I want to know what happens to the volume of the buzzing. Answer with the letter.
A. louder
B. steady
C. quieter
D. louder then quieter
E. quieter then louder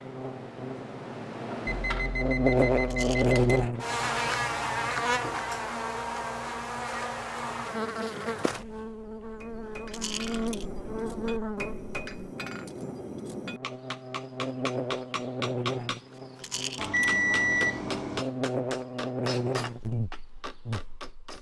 C.